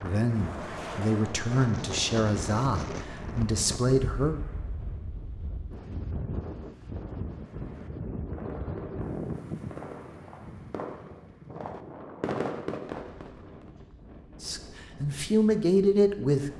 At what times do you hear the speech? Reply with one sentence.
You can hear the speech from 0.0 to 4.3 s and from 14.4 to 16.5 s.